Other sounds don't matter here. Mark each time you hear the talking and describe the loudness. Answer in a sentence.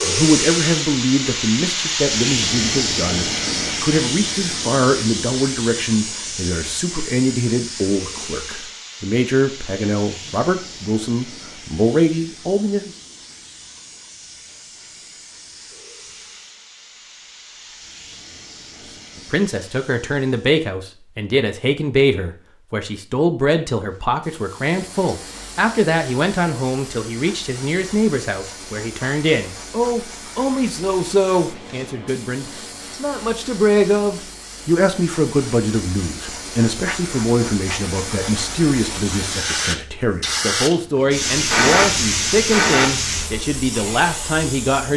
You can hear the talking from 0.0 to 12.9 s, at a steady volume; and from 19.3 to 44.9 s, at a steady volume.